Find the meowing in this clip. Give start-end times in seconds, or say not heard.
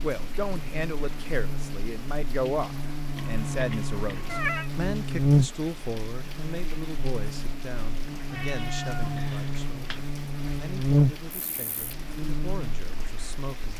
3.1-4.7, 8.3-10.1.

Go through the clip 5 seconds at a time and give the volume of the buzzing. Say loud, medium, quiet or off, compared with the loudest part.
medium, loud, loud.